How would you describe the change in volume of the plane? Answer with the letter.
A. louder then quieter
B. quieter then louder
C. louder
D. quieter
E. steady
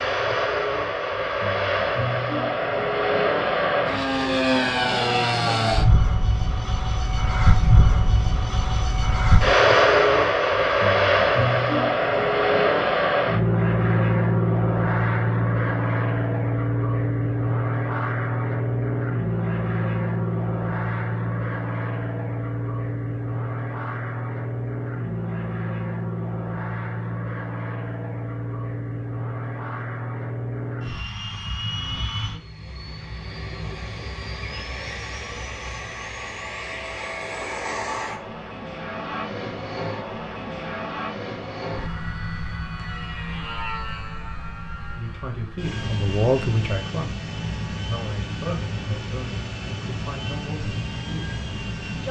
D.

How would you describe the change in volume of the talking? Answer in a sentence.
The loudness of the talking goes down.